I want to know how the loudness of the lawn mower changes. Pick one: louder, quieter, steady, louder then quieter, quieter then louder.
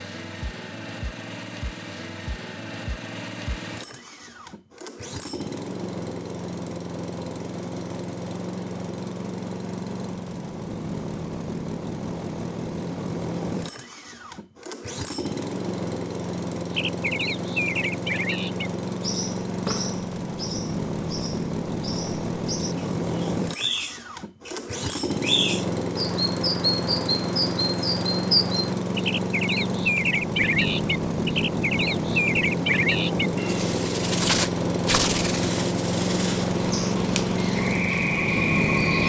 louder.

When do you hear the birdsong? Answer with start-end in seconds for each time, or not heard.
16.8-39.0.